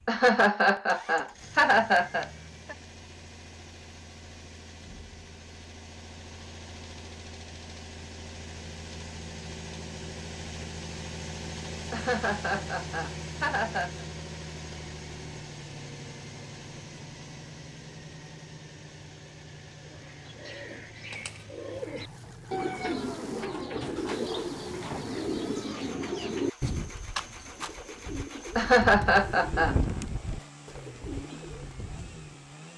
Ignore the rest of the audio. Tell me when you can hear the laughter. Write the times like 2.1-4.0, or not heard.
0.1-2.8, 11.9-14.1, 28.6-29.8.